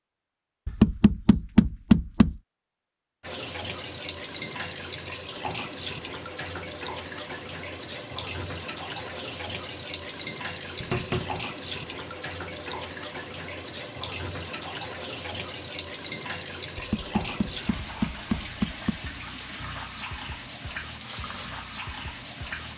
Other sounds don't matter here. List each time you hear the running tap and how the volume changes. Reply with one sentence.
The running tap can be heard from 3.2 to 22.7 s, at a steady volume.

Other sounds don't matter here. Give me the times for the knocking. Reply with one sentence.
The knocking can be heard from 0.7 to 2.4 s, from 10.8 to 11.4 s and from 16.8 to 19.0 s.